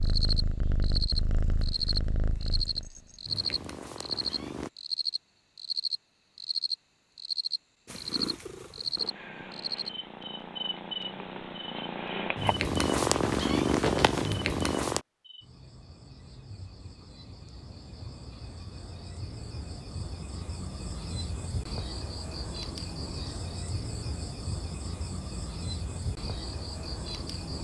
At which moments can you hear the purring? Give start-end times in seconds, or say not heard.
0.0-4.7, 7.8-15.1.